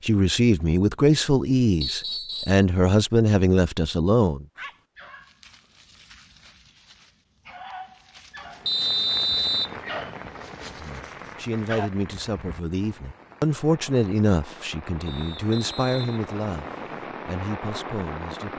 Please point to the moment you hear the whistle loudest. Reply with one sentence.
The loudest moment of the whistle is at 9 seconds.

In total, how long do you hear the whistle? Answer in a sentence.
The whistle can be heard for 4 seconds in total.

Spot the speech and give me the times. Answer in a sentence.
The speech can be heard from 0.0 to 4.5 s and from 10.7 to 18.5 s.